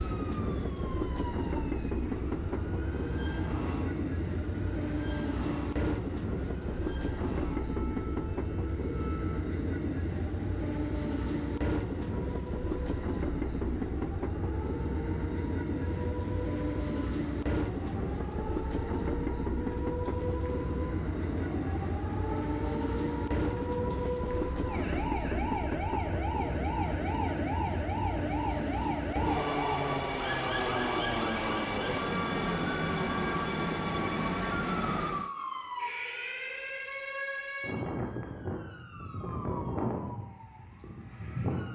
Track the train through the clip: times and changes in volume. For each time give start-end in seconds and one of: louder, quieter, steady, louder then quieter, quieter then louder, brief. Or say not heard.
0.0-35.3 steady.